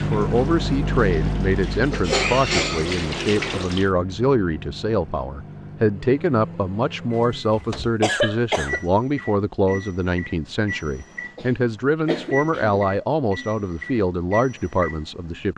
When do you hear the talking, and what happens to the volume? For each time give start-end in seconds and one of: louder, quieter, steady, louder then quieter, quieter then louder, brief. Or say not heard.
0.0-15.5 steady.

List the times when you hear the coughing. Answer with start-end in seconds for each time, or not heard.
1.9-2.9, 7.2-8.8, 11.3-12.9.